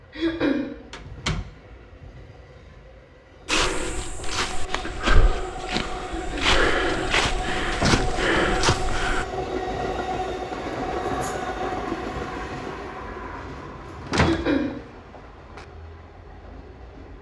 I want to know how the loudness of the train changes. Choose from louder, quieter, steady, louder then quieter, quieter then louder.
louder then quieter.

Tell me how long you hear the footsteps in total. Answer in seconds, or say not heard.
6 s.